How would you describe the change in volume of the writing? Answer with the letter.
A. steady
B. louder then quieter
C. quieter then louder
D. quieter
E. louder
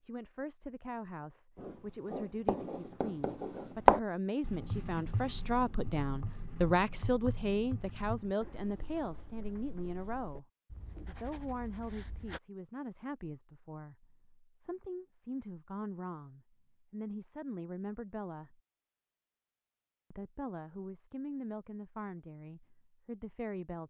D.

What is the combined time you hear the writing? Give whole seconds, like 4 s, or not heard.
11 s.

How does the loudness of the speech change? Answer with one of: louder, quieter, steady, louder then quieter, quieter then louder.
louder then quieter.